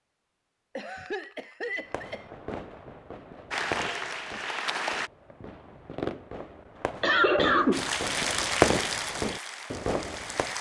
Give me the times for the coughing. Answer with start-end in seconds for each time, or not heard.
0.8-2.2, 7.0-7.9.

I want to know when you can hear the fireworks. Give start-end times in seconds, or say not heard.
1.9-10.5.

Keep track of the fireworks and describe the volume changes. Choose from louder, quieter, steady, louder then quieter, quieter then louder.
quieter then louder.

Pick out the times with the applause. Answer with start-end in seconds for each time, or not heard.
3.5-5.1, 7.7-10.5.